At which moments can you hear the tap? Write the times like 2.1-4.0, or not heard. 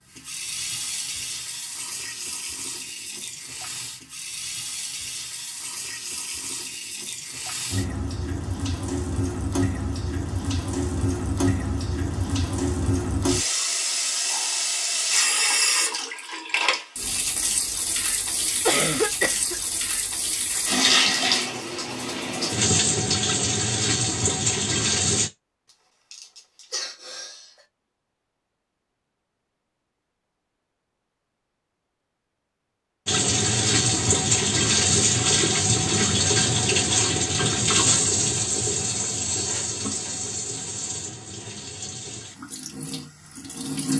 0.1-25.3, 33.0-43.9.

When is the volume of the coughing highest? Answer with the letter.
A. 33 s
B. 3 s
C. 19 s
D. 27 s
C.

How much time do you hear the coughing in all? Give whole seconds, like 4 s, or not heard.
2 s.